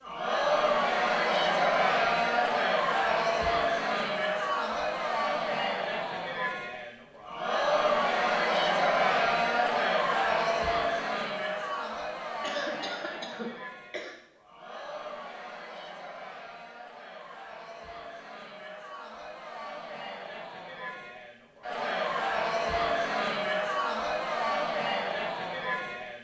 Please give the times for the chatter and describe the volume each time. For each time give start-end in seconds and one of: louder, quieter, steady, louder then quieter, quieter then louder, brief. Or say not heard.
0.0-26.1 quieter then louder.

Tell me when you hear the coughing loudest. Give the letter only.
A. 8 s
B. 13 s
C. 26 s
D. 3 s
B.